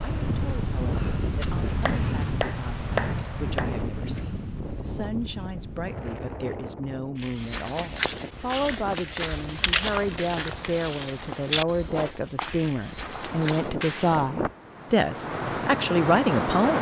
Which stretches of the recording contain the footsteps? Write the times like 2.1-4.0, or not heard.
7.2-14.3.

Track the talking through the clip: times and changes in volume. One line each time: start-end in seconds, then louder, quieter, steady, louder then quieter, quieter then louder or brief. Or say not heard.
0.0-16.7 louder.